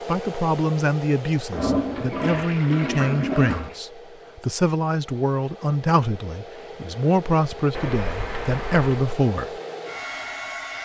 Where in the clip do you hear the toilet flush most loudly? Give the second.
2 s.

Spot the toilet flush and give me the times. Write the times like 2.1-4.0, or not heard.
1.5-3.8, 7.7-9.1.